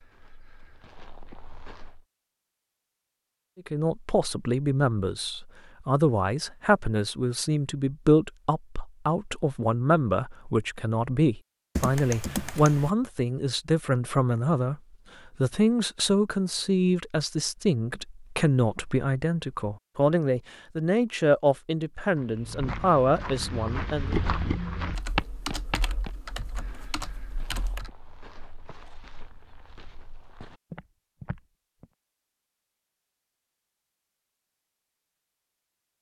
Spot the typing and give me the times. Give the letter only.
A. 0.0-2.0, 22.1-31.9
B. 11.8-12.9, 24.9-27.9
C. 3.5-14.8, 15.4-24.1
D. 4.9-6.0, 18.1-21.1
B.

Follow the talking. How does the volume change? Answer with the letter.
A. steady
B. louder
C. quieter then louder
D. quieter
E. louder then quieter
A.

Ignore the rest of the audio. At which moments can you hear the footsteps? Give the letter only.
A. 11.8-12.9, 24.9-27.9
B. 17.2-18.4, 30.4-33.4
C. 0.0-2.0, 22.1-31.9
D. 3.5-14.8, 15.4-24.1
C.